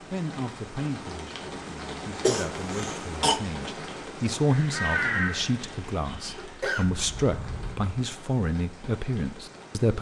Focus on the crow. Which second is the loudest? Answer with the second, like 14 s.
5 s.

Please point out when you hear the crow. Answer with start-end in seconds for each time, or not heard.
4.5-7.8.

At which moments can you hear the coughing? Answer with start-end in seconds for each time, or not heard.
2.2-3.4, 6.4-7.0.